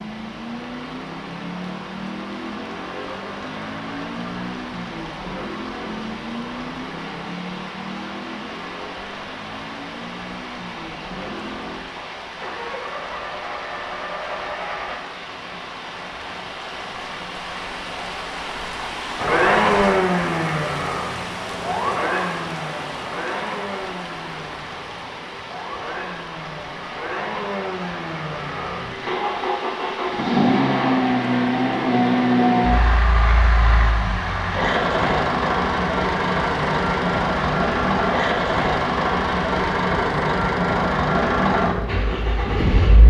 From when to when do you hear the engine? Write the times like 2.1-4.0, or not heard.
0.0-15.0, 19.1-43.0.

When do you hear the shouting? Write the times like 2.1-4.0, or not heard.
not heard.